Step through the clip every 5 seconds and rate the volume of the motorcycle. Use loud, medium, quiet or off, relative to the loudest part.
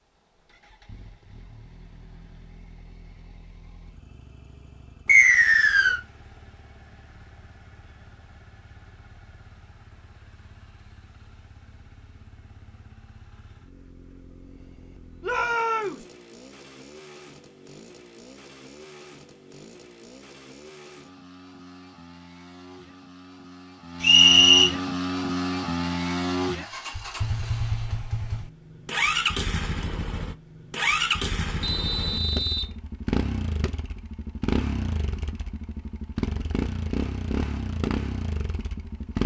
quiet, quiet, quiet, quiet, medium, loud, loud, loud.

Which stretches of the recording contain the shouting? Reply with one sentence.
You can hear the shouting from 15.2 to 16.1 s.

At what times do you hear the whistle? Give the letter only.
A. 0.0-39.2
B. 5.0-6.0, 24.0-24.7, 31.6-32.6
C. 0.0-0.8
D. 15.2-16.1
B.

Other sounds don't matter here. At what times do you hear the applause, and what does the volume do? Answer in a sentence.
You can't hear the applause here.